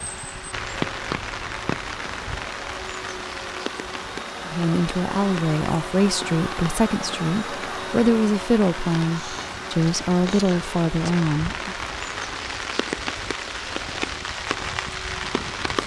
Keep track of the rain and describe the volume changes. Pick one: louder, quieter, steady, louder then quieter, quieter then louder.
quieter then louder.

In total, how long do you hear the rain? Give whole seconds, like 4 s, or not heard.
16 s.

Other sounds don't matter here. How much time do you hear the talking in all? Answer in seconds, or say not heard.
7 s.